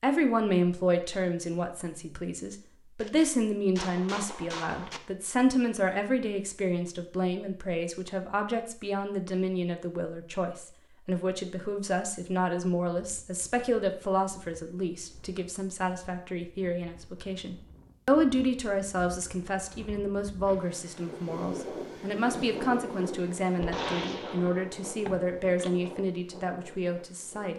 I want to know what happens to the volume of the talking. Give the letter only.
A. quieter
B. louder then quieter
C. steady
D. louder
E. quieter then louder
C.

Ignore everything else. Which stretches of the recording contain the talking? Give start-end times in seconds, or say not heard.
0.0-27.5.